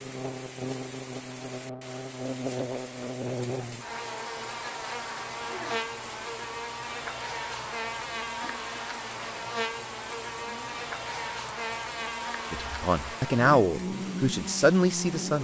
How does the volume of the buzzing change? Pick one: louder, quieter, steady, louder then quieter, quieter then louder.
steady.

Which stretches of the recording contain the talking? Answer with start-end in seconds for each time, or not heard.
12.5-15.4.